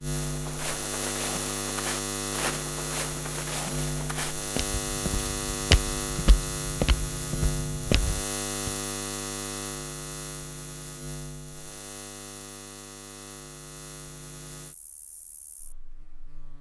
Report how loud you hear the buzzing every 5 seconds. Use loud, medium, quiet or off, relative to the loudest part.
loud, loud, medium, quiet.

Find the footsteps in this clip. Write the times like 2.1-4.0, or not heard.
0.2-8.7.